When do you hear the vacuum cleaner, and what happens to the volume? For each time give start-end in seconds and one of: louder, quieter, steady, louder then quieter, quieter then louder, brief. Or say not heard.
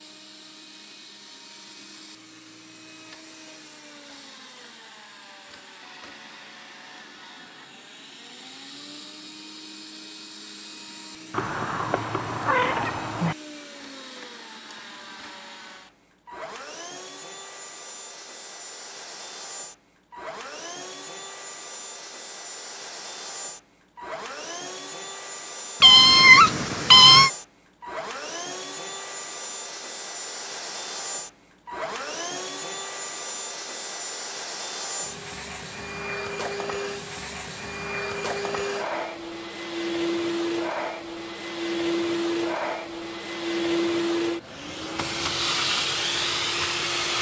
0.0-47.1 louder.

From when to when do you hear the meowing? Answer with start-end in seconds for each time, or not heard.
11.3-13.3, 25.8-27.3.